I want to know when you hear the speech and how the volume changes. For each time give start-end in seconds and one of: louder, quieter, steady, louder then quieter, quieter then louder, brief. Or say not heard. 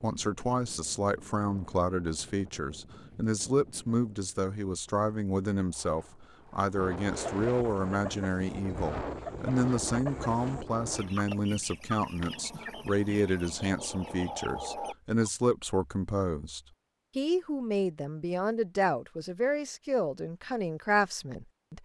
0.0-21.8 steady.